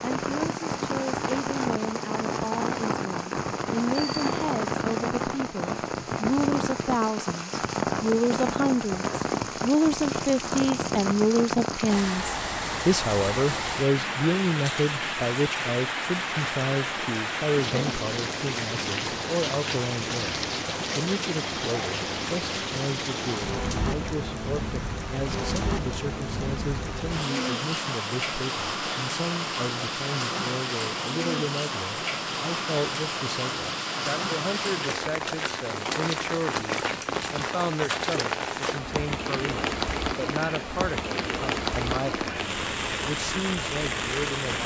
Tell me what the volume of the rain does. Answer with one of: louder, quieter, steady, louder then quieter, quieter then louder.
steady.